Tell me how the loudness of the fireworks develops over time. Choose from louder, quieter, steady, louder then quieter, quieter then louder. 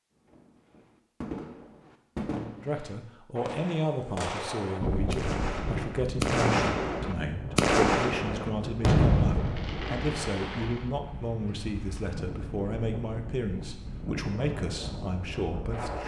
louder.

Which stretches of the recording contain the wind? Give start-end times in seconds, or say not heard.
4.8-16.0.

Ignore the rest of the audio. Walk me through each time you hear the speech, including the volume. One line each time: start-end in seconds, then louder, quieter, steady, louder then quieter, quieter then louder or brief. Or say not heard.
2.6-16.0 steady.